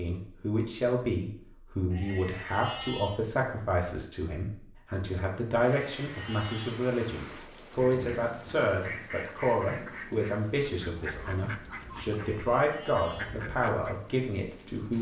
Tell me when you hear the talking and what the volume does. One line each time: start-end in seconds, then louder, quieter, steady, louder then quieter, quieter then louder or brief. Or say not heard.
0.0-14.9 steady.